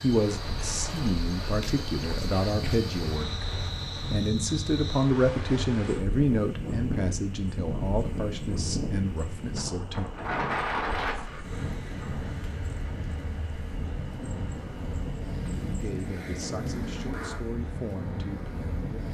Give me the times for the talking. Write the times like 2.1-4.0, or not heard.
0.0-10.1, 15.8-19.0.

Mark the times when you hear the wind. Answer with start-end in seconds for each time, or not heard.
0.0-19.0.